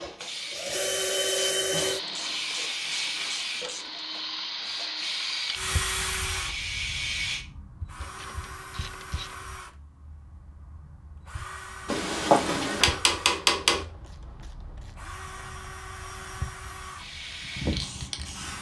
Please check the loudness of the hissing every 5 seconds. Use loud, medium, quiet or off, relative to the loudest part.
loud, loud, off, medium.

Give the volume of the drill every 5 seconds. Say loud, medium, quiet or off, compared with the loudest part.
loud, medium, quiet, medium.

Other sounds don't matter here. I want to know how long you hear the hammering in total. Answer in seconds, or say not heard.
2 s.